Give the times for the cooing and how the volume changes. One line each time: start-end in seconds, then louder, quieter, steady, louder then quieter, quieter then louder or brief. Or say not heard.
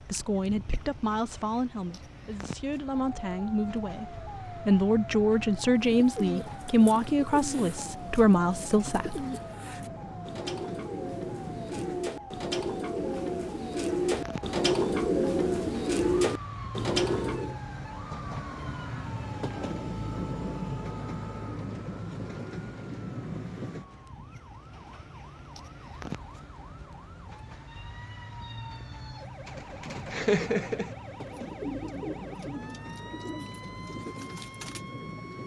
6.0-17.6 louder
29.4-35.4 quieter.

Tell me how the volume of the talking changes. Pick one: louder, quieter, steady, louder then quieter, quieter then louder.
louder.